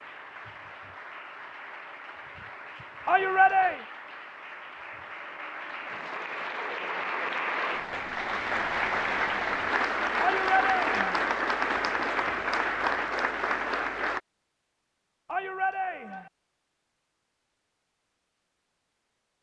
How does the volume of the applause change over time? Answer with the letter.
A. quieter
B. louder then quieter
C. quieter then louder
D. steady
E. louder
E.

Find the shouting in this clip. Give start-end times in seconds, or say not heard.
3.0-3.8, 10.2-11.2, 15.2-16.3.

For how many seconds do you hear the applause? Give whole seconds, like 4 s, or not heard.
14 s.